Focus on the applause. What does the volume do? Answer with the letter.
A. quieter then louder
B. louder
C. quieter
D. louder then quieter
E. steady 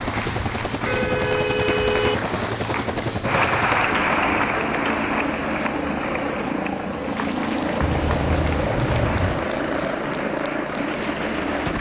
D.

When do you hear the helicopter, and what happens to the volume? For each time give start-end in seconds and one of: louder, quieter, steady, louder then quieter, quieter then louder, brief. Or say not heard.
0.0-11.7 steady.